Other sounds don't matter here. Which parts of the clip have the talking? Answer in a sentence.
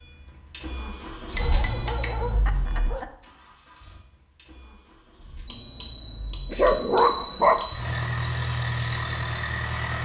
You can't hear the talking here.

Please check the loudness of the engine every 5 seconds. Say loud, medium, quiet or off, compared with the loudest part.
medium, loud.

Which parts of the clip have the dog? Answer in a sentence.
The dog can be heard from 1.4 to 3.1 s and from 6.5 to 7.7 s.